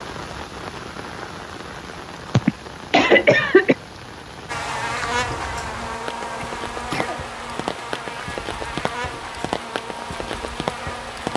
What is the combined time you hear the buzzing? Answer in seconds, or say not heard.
7 s.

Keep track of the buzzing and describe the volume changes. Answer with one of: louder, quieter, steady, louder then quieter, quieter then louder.
quieter.